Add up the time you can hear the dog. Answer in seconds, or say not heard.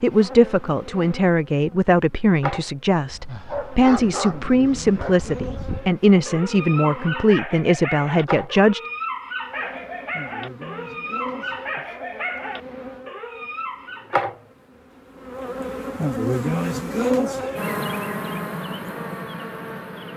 11 s.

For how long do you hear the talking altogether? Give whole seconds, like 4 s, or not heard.
9 s.